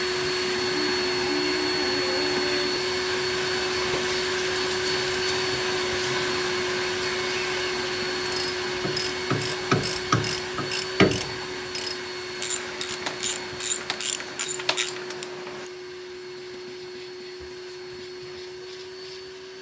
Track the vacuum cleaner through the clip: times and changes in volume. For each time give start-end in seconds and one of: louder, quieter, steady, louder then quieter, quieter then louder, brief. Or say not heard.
0.0-19.5 quieter.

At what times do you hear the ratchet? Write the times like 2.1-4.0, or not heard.
8.2-15.7.